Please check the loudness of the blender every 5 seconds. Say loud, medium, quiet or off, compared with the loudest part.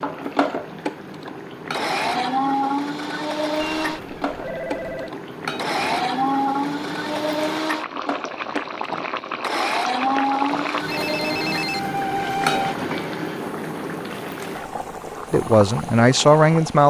loud, loud, loud, quiet.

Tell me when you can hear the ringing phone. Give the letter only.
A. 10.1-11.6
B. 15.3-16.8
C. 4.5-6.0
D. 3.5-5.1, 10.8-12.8
D.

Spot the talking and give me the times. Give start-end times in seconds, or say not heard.
15.3-16.8.